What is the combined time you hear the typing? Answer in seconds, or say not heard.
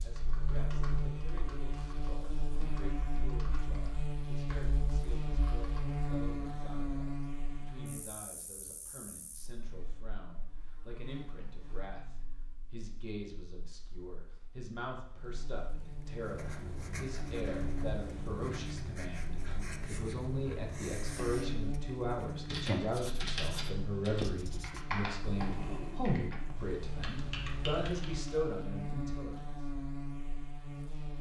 12 s.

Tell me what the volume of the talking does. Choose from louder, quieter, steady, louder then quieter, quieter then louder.
louder.